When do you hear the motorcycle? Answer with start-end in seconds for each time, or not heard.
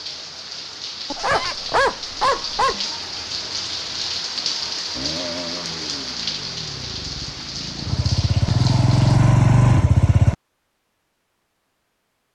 4.9-10.3.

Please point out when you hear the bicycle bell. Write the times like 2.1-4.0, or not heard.
not heard.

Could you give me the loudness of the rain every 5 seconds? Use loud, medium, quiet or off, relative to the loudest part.
loud, loud, off.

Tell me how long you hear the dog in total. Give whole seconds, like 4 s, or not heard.
2 s.